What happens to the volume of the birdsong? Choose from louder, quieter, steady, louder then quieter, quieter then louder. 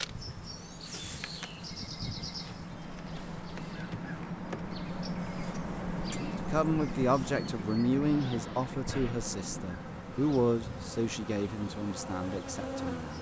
louder then quieter.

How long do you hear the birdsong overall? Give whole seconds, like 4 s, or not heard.
13 s.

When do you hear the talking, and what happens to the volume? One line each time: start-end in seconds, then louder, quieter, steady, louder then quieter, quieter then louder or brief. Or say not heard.
6.5-13.1 quieter.